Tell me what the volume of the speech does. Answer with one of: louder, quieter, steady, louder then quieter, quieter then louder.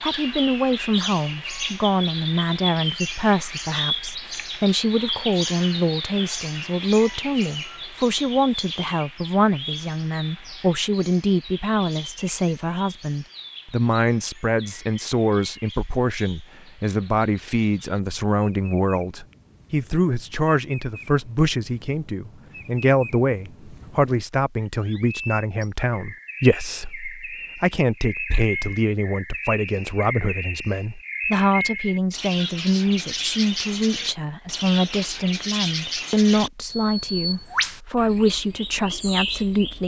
steady.